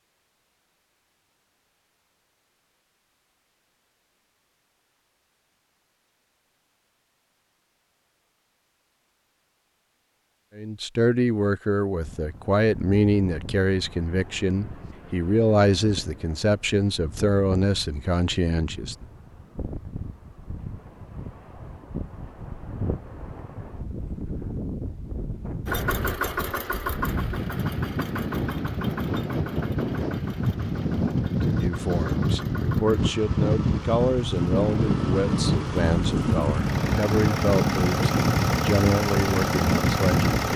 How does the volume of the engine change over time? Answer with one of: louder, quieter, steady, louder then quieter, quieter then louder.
quieter then louder.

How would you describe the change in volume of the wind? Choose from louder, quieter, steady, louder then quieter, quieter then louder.
louder.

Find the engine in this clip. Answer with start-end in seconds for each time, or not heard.
25.6-40.5.